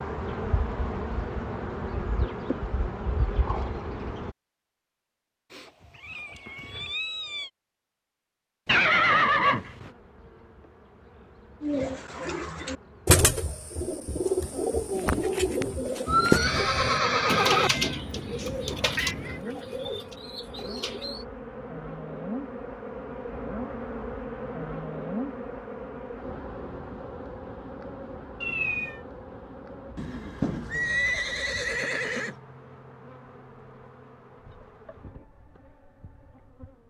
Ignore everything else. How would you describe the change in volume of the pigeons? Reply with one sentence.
The volume of the pigeons goes down.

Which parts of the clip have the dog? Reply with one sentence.
You can't hear the dog here.